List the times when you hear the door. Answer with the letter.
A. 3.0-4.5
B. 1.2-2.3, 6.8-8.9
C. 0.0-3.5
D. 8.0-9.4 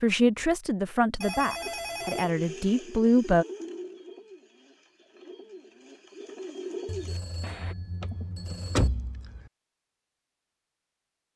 D.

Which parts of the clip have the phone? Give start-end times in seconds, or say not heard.
1.2-2.3, 6.8-8.9.